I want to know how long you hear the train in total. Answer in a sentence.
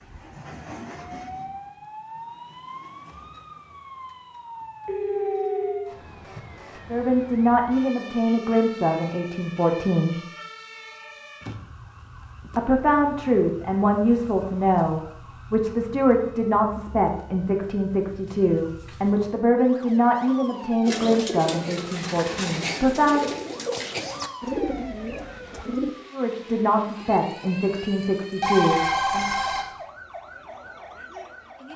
The train can be heard for 4 seconds in total.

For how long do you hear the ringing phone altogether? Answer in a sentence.
You can hear the ringing phone for 2 seconds altogether.